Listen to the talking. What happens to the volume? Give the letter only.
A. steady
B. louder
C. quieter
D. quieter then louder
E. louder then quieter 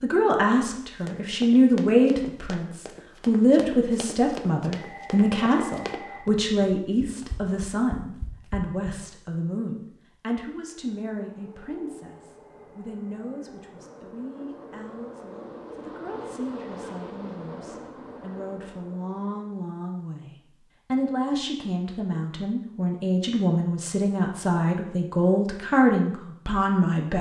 D.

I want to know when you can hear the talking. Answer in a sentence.
You can hear the talking from 0.0 to 27.1 s.